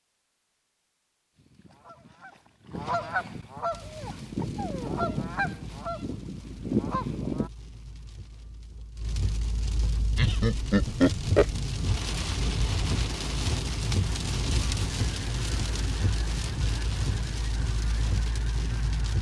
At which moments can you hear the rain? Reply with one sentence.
You can hear the rain from 3.7 to 19.1 s.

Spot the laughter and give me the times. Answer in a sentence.
The laughter can be heard from 10.2 to 11.6 s.